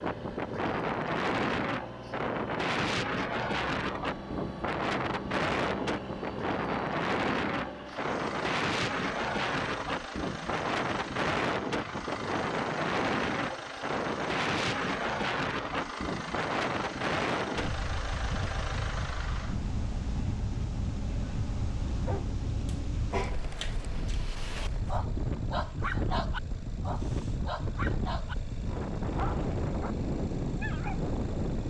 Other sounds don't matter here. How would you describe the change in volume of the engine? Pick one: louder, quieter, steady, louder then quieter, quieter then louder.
quieter.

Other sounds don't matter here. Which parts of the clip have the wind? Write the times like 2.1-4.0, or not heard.
0.0-31.6.